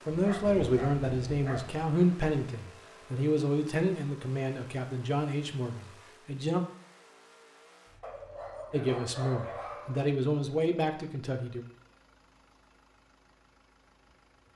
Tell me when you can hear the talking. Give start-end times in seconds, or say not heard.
0.1-6.6, 8.7-11.6.